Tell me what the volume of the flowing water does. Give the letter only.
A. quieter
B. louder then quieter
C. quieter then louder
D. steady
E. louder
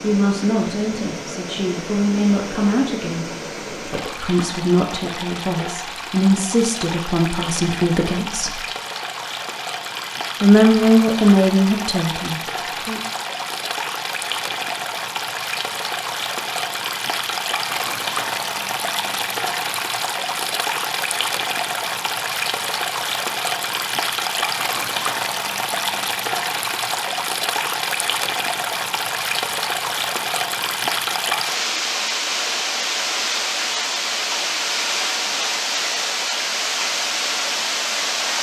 E.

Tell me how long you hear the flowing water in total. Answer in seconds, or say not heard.
38 s.